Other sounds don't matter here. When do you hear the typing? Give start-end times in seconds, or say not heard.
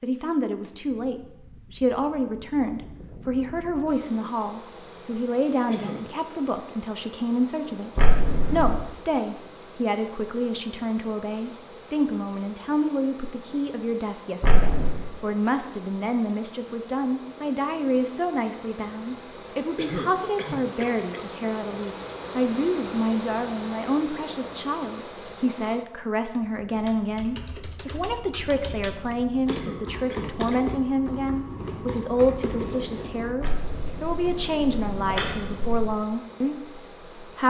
26.8-34.0.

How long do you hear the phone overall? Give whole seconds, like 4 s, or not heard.
4 s.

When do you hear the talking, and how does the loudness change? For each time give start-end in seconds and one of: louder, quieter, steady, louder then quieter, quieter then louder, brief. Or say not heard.
0.0-37.4 steady.